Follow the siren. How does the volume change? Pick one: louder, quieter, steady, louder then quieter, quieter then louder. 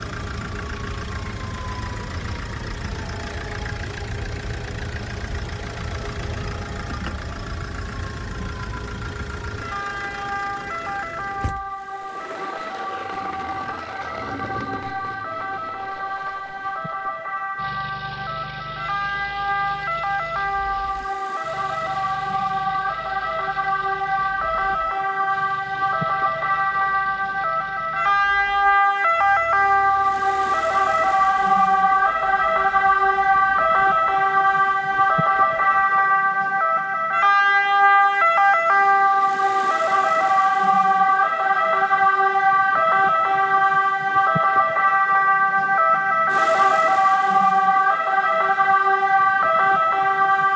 louder.